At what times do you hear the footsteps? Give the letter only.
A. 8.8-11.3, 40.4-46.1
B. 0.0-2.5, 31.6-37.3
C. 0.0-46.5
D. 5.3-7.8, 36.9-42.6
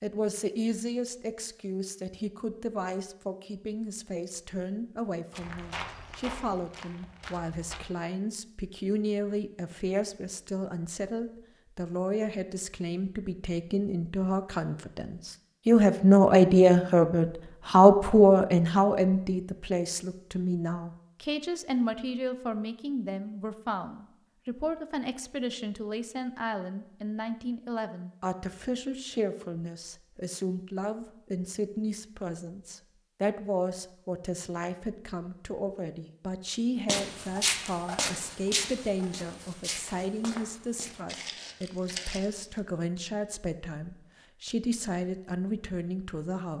D.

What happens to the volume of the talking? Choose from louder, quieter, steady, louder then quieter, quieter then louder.
louder then quieter.